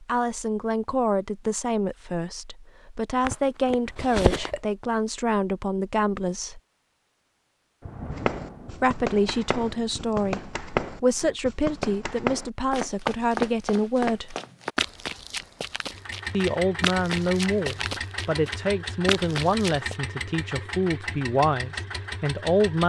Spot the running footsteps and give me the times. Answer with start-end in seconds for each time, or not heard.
8.1-20.0.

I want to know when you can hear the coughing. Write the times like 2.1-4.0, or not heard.
3.2-4.6.